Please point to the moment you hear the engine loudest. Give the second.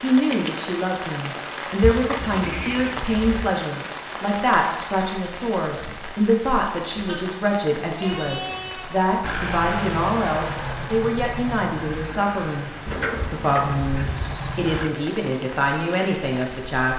10 s.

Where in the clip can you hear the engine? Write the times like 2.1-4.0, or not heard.
9.2-14.9.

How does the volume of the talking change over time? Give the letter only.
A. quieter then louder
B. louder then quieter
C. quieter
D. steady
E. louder
D.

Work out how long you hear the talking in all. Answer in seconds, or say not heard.
16 s.